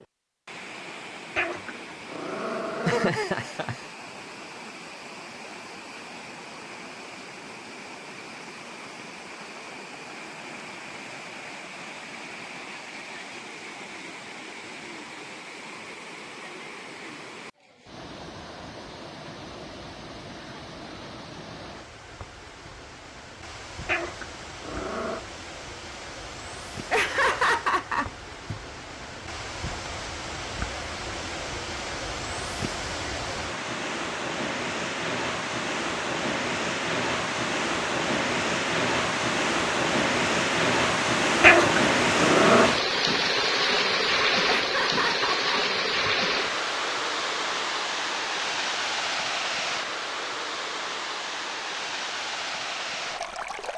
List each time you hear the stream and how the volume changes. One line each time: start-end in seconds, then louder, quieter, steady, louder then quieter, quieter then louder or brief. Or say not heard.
0.0-53.7 louder.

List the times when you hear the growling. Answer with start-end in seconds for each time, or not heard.
1.4-3.1, 23.9-25.2, 41.4-42.7.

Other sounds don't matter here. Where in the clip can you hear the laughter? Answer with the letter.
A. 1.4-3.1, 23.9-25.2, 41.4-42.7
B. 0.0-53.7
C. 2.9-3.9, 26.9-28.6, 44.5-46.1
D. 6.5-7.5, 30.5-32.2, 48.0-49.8
C.